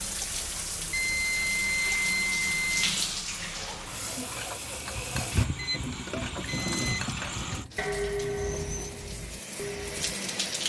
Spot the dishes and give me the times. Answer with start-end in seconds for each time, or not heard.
4.2-10.2.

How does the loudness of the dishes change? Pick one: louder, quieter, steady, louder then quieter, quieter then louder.
louder then quieter.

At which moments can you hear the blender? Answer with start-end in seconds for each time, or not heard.
1.6-9.1.